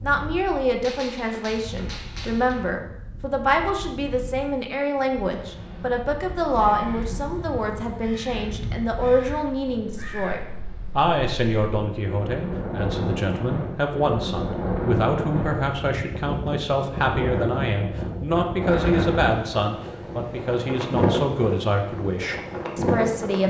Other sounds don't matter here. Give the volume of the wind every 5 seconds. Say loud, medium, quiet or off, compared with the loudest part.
quiet, quiet, loud, loud, loud.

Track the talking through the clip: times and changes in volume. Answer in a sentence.
The talking can be heard from 0.0 to 23.4 s, at a steady volume.